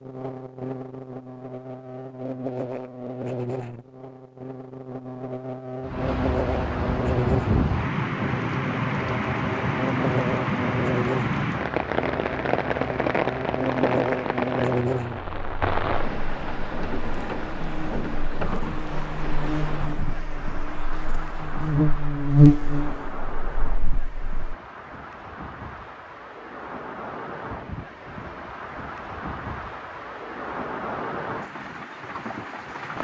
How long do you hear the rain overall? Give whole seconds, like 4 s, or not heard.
27 s.